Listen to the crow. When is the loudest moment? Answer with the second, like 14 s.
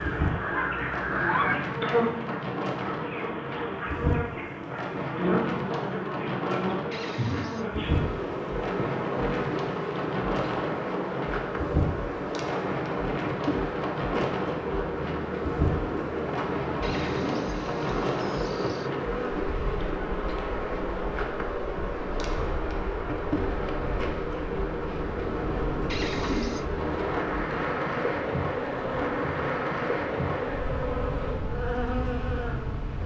1 s.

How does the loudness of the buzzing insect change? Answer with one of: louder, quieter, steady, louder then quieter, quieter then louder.
steady.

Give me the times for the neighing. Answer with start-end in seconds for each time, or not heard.
6.9-7.7, 16.8-18.9, 25.9-26.6.